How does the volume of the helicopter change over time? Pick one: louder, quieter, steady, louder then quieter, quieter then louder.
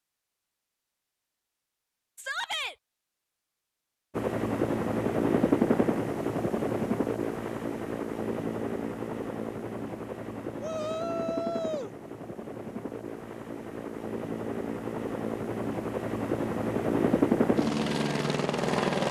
quieter then louder.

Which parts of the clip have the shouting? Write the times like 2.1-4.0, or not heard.
2.1-2.8, 10.6-11.9.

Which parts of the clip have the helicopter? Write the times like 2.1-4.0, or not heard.
4.2-19.0.